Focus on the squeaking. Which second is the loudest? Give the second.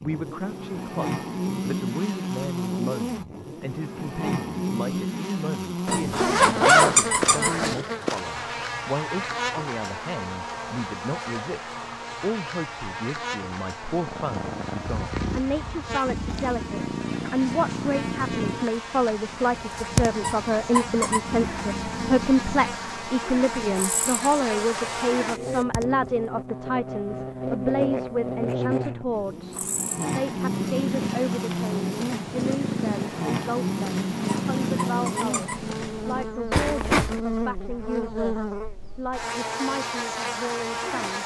7 s.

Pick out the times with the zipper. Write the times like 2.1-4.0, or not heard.
5.8-7.8, 24.6-25.6, 36.5-37.2.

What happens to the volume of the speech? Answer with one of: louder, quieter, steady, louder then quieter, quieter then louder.
louder then quieter.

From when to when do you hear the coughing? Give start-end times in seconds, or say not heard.
not heard.